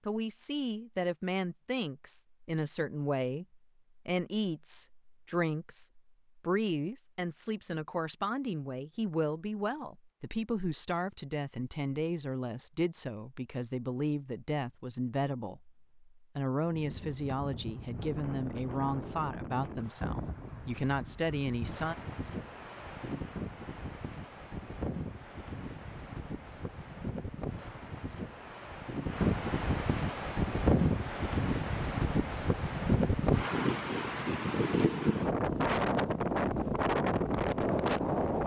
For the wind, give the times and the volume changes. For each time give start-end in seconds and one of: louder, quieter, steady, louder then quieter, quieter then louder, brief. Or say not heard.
16.7-38.4 louder.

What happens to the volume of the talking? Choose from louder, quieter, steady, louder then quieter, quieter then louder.
steady.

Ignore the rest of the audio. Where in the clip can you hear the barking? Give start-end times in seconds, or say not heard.
not heard.